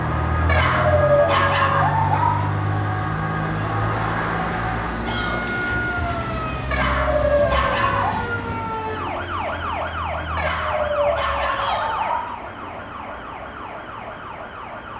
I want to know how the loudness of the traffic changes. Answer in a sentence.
The volume of the traffic goes down.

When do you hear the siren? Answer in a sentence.
The siren can be heard from 0.1 to 14.9 s.